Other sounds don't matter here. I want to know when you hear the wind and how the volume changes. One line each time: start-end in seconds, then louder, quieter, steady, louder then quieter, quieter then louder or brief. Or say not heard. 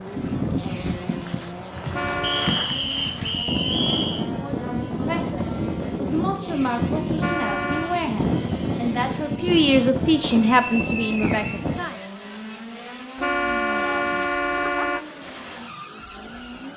0.0-11.8 steady.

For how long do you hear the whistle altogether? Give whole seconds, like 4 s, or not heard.
4 s.